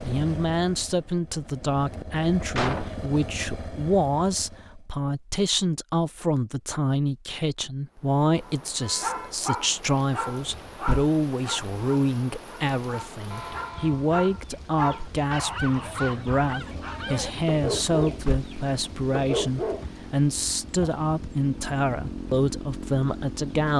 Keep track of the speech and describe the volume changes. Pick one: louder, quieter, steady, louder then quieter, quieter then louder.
steady.